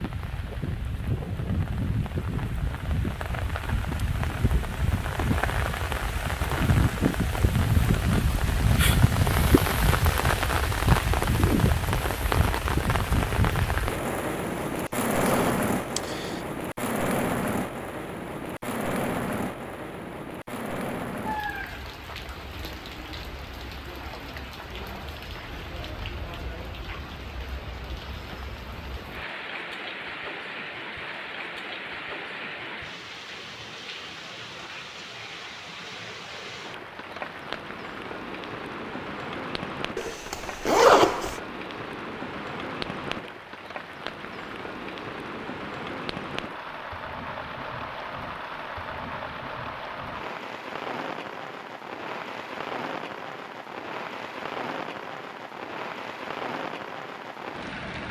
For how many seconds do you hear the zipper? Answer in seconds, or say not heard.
3 s.